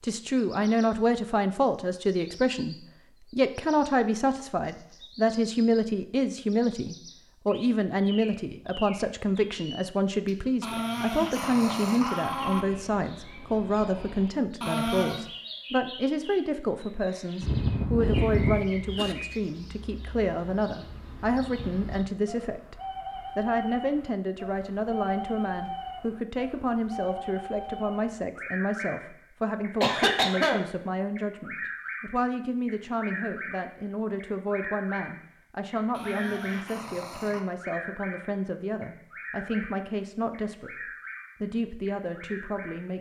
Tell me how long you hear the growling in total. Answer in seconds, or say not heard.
4 s.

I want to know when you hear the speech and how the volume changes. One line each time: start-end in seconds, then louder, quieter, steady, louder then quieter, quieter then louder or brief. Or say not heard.
0.0-22.8 steady
23.4-42.9 steady.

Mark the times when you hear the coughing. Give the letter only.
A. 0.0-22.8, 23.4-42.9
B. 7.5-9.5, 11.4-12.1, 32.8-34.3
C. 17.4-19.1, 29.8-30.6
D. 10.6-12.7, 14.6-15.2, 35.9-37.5
C.